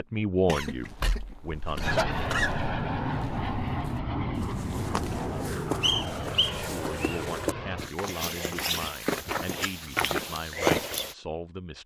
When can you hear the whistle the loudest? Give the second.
6 s.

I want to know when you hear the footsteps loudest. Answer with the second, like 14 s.
11 s.